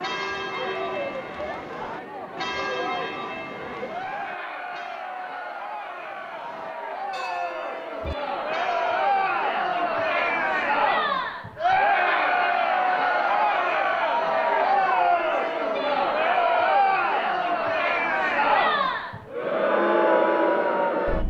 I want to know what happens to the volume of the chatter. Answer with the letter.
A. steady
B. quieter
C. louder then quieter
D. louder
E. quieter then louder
D.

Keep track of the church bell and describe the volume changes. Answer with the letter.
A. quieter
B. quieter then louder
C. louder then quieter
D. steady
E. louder
A.